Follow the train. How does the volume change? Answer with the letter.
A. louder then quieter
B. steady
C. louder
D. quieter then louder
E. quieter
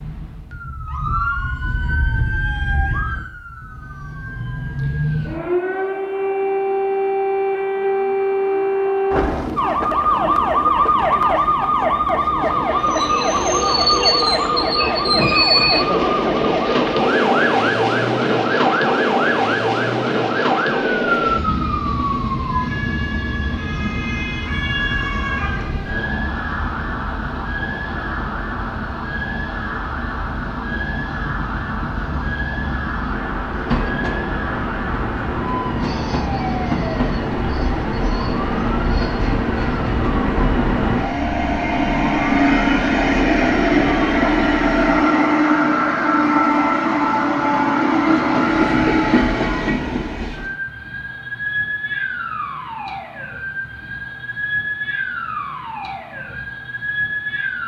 D.